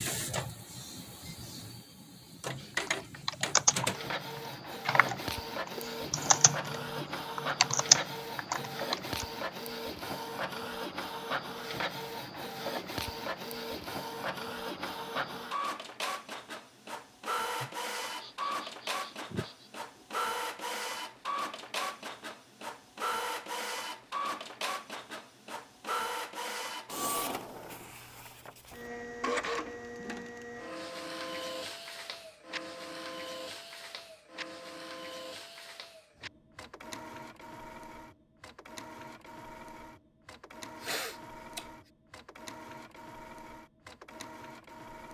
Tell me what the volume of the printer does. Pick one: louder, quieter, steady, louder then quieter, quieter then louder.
quieter.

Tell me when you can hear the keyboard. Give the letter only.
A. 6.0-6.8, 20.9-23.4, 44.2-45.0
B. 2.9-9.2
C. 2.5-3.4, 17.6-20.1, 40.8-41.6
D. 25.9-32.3
B.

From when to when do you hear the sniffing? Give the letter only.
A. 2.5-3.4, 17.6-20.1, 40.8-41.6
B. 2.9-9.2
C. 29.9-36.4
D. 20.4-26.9
A.